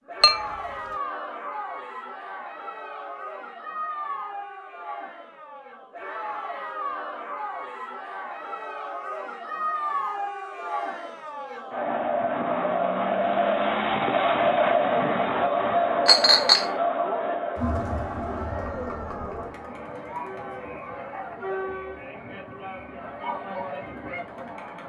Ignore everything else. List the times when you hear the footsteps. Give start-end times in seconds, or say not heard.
not heard.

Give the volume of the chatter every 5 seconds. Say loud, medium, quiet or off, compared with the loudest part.
medium, medium, loud, loud, medium.